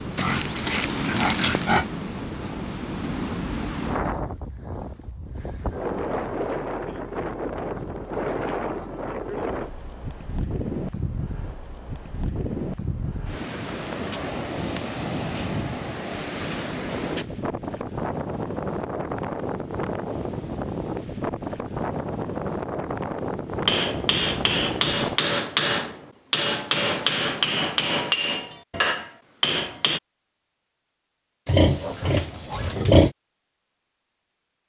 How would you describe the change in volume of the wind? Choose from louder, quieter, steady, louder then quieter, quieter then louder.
steady.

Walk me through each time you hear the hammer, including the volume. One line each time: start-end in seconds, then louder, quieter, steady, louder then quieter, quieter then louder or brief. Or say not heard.
23.6-30.0 steady.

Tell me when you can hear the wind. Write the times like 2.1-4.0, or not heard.
0.0-25.2.